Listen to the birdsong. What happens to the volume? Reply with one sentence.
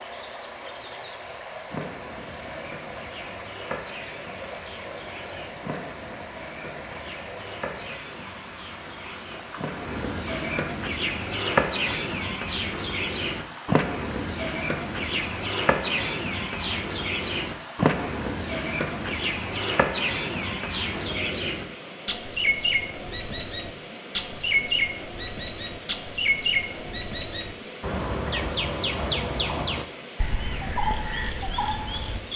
The volume of the birdsong goes up.